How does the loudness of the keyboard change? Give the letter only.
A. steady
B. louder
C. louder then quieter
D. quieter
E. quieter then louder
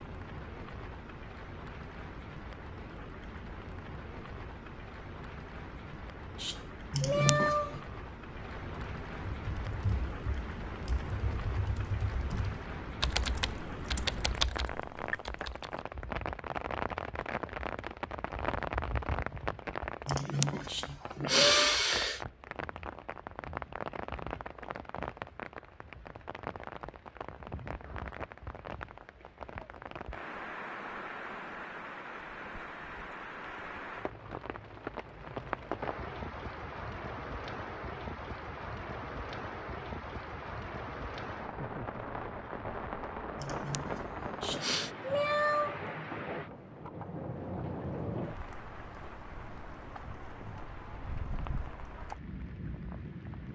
B.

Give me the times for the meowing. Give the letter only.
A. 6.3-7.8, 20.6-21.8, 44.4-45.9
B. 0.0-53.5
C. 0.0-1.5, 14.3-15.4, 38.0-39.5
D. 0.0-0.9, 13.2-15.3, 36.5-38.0
A.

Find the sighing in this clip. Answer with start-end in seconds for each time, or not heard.
6.9-7.8, 20.1-22.2, 43.4-44.9.